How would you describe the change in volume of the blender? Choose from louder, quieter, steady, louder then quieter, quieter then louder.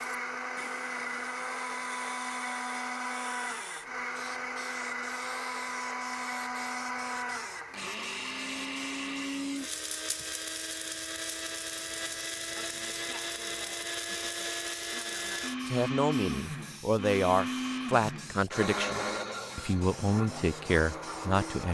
steady.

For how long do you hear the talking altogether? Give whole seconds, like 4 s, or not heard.
6 s.